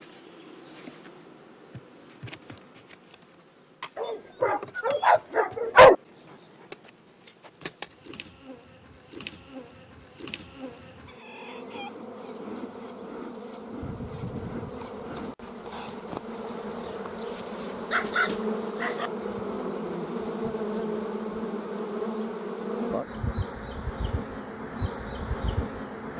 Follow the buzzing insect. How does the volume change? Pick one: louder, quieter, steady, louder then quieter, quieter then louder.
louder.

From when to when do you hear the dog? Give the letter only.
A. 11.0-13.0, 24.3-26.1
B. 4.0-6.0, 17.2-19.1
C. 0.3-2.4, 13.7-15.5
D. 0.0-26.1
B.